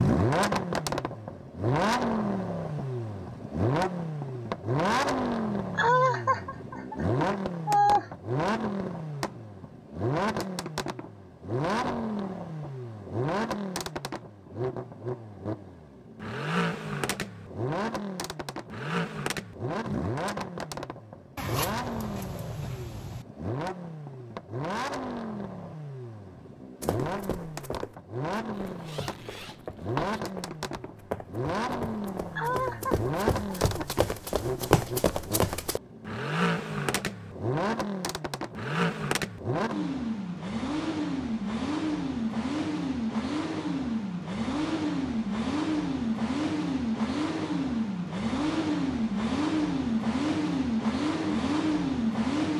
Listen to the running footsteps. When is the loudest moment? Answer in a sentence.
The loudest moment of the running footsteps is at 35 seconds.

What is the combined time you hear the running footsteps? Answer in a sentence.
The running footsteps can be heard for 9 seconds in total.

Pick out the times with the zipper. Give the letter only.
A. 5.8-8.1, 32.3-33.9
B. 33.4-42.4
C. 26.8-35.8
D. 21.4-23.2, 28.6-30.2
D.